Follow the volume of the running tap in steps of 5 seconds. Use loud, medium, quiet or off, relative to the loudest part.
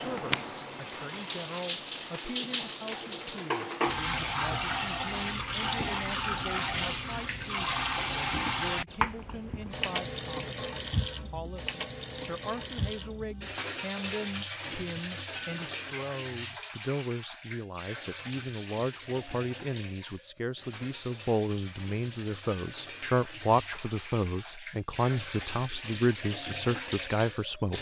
loud, loud, medium, medium, quiet, medium.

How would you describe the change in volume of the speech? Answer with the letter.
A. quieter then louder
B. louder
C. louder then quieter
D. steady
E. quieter
B.